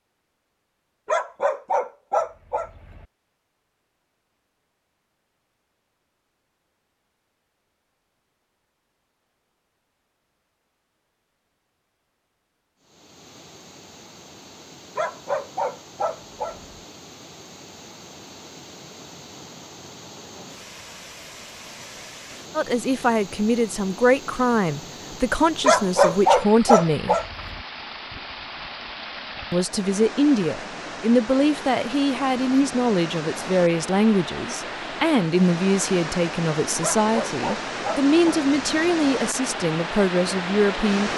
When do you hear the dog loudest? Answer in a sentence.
The loudest moment of the dog is at 26 seconds.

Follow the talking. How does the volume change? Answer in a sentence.
The volume of the talking stays about the same.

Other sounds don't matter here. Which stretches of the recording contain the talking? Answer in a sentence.
The talking can be heard from 22.6 to 27.1 s and from 29.5 to 41.1 s.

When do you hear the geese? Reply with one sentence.
The geese can't be heard in this clip.